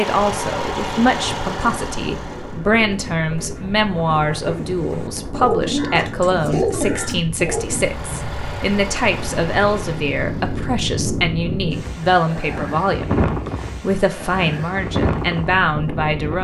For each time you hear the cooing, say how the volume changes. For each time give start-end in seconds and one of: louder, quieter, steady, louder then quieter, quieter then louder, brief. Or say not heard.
1.5-7.8 louder.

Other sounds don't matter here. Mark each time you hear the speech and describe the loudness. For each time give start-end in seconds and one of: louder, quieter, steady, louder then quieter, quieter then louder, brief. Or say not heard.
0.0-16.3 steady.